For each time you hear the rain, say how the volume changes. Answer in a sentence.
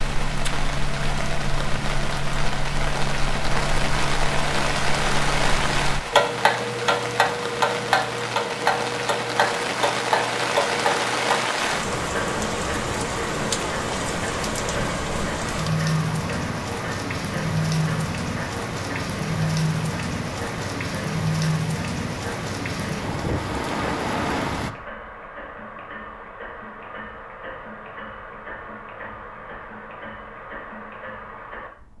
You can hear the rain from 0.0 to 24.7 s, at a steady volume.